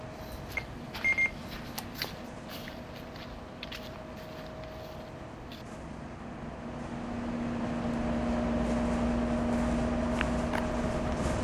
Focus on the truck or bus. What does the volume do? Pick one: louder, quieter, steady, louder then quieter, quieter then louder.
louder.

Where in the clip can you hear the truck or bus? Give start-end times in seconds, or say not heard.
0.0-11.3.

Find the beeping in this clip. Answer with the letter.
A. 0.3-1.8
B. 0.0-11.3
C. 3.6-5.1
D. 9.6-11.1
A.